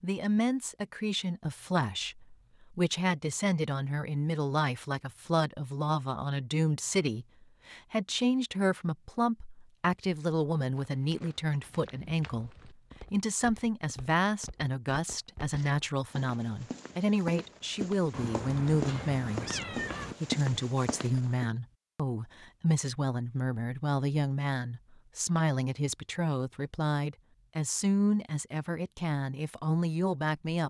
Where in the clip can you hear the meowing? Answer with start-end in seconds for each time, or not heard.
18.1-20.1.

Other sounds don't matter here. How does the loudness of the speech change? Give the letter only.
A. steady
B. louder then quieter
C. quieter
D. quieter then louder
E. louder
A.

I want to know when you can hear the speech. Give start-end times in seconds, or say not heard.
0.0-30.6.